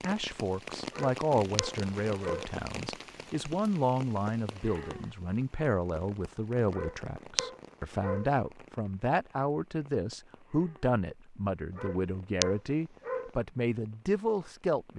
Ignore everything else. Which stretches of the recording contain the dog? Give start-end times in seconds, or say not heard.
0.9-2.5, 6.7-8.3, 11.8-13.3.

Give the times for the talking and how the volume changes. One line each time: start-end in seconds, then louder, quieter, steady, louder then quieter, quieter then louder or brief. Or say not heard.
0.0-14.9 steady.